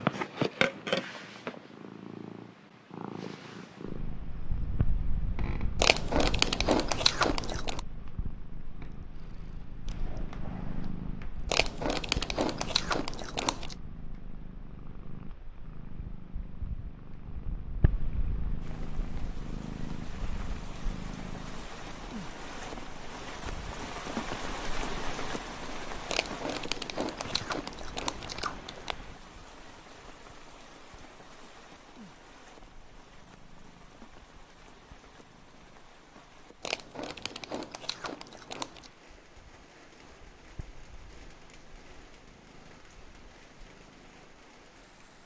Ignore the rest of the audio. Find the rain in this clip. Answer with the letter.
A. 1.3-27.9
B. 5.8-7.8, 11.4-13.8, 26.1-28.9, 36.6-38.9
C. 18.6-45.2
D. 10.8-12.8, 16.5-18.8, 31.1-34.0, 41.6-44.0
C.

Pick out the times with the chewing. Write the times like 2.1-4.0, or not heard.
5.8-7.8, 11.4-13.8, 26.1-28.9, 36.6-38.9.